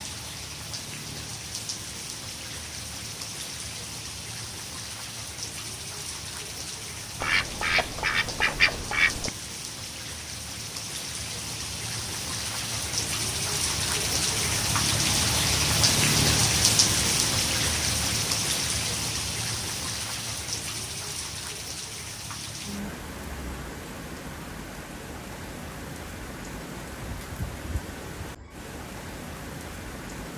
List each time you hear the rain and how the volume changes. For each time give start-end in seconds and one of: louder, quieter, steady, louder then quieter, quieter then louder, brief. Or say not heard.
0.0-30.3 louder then quieter.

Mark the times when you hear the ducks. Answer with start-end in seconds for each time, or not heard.
7.2-9.3.